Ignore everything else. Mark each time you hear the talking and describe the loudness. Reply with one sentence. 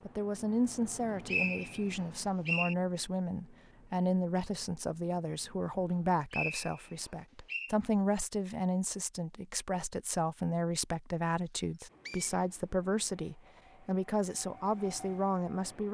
You can hear the talking from 0.1 to 15.8 s, at a steady volume.